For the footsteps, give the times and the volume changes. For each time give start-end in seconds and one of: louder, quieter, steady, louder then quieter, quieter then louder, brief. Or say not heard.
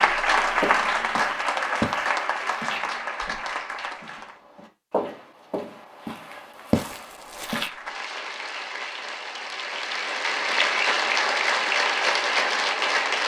0.5-7.7 quieter then louder.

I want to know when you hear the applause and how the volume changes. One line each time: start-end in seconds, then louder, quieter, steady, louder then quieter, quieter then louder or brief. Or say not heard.
0.0-4.4 quieter
7.5-13.2 louder.